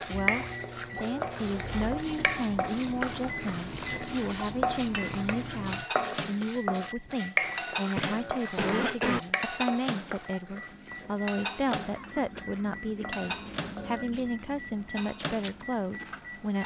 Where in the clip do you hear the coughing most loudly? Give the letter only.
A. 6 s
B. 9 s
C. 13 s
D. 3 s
B.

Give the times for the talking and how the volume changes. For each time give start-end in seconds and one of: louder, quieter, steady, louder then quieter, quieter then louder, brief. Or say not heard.
0.1-16.6 steady.